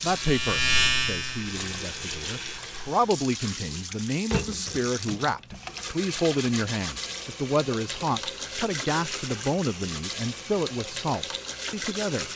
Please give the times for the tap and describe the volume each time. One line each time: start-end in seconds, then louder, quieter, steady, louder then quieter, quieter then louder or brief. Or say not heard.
0.0-12.3 steady.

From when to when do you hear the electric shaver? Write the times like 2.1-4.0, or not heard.
0.0-2.6.